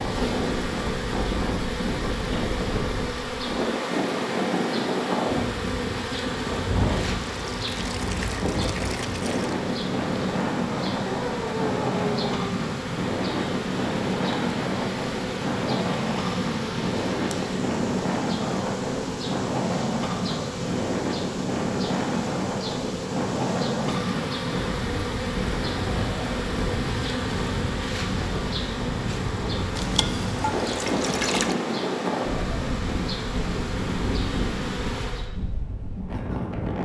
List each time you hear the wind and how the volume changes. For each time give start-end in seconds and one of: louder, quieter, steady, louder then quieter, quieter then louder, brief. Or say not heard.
0.0-36.7 steady.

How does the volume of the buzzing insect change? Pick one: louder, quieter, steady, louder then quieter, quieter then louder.
steady.